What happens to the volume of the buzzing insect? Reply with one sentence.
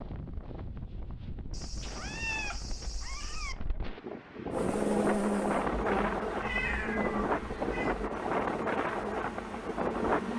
The volume of the buzzing insect goes down.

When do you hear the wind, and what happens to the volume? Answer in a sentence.
You can hear the wind from 0.0 to 10.3 s, getting louder.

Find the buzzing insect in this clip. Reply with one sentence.
The buzzing insect can be heard from 4.5 to 10.3 s.